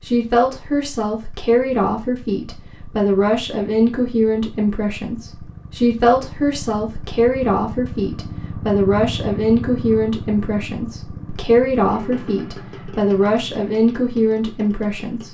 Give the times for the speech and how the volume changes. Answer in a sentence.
You can hear the speech from 0.0 to 15.3 s, at a steady volume.